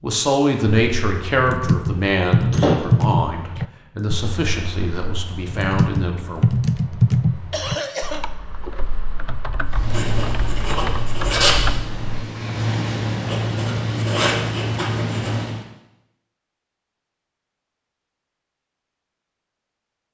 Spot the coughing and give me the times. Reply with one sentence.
You can hear the coughing from 7.5 to 8.2 s.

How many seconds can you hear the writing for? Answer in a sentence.
The writing can be heard for 6 seconds in total.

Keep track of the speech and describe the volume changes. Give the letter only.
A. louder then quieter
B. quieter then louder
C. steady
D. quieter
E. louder
D.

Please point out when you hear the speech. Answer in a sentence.
The speech can be heard from 0.0 to 6.5 s.